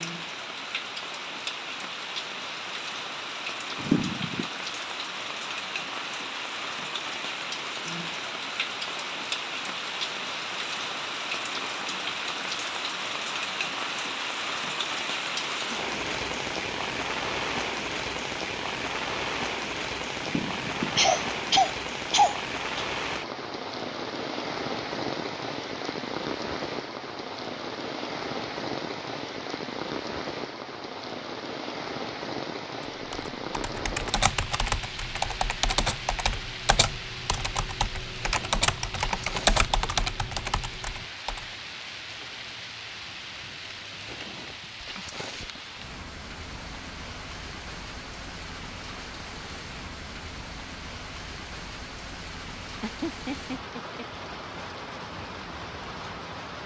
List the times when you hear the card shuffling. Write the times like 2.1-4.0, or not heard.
not heard.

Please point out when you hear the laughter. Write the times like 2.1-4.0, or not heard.
3.8-4.5, 20.2-22.9, 52.8-54.0.